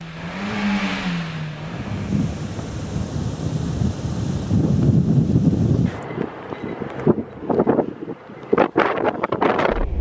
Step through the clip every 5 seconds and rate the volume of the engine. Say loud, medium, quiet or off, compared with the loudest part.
loud, off.